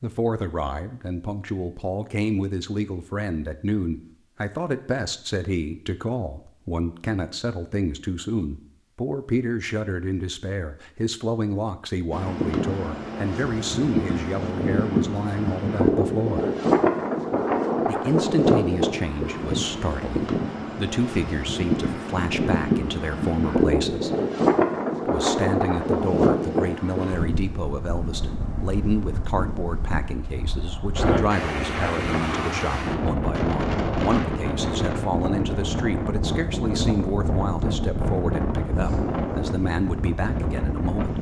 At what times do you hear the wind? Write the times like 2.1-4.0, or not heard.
12.1-41.1.